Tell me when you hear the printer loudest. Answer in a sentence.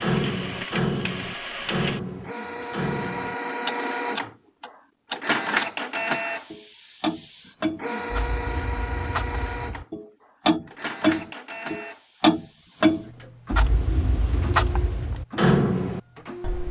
The loudest moment of the printer is at 6 seconds.